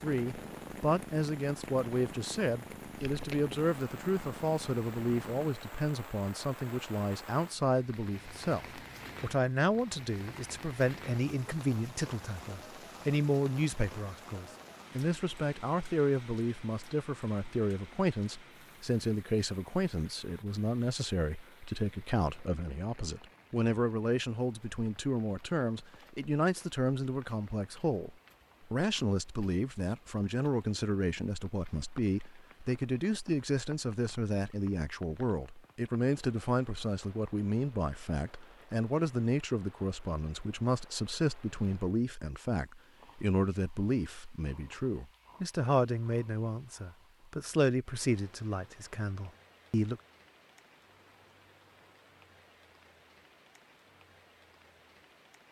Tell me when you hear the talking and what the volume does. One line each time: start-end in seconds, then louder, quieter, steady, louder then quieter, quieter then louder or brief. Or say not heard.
0.0-50.0 steady.